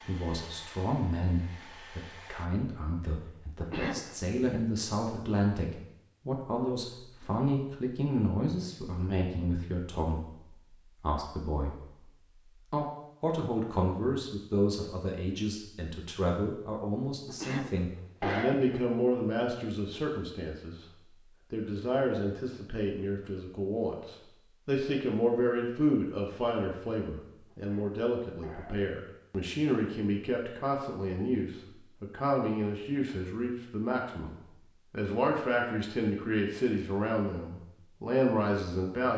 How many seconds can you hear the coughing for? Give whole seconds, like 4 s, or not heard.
4 s.